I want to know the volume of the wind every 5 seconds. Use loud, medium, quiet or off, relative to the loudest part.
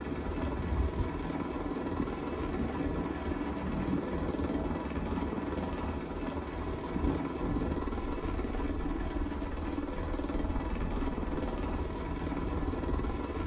loud, loud, medium.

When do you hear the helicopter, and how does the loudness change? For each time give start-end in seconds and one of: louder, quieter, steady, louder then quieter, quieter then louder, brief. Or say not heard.
0.0-13.4 steady.